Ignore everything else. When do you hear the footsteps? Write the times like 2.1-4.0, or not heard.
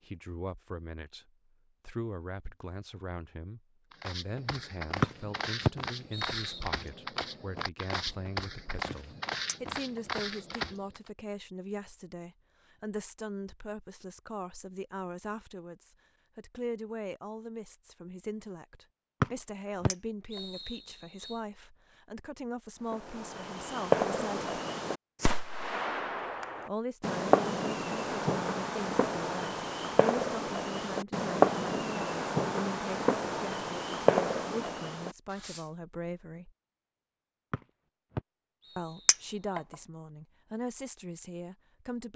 3.9-11.1.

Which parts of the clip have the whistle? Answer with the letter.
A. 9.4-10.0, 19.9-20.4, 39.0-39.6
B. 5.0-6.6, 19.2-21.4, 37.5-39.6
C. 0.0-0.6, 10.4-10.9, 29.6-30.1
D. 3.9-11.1
B.